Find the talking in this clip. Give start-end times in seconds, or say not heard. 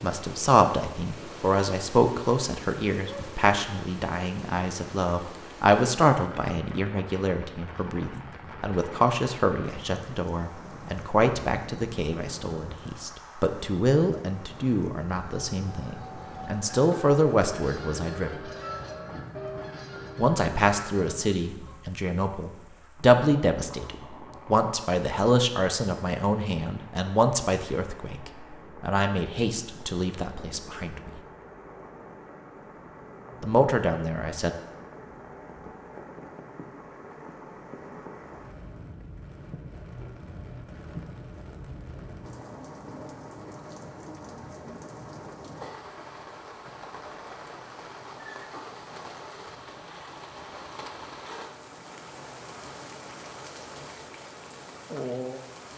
0.0-18.4, 20.1-31.1, 33.4-34.5.